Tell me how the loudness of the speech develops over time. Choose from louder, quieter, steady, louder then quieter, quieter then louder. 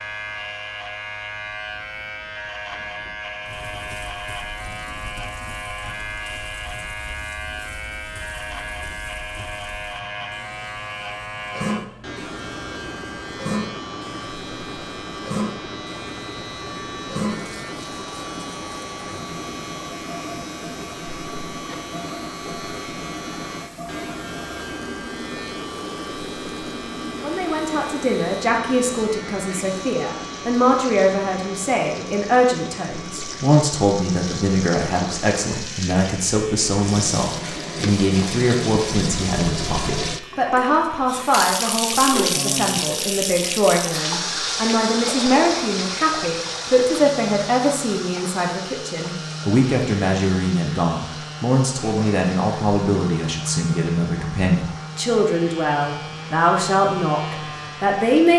steady.